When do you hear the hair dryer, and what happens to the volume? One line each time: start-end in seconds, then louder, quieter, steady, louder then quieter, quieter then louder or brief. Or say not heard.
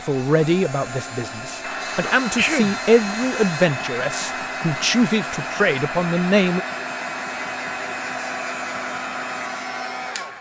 0.0-10.3 steady.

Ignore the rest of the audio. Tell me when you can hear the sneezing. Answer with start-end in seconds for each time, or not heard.
2.0-2.8.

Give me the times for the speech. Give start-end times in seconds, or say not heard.
0.0-6.6.